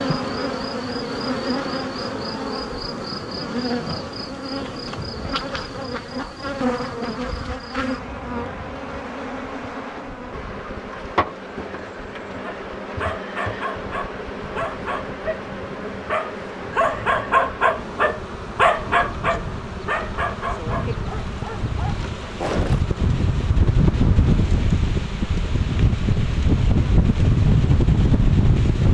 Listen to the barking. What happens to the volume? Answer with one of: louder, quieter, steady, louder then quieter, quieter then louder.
louder then quieter.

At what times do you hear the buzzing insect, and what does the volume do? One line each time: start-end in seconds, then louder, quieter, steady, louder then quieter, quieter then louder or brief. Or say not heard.
0.0-28.8 quieter.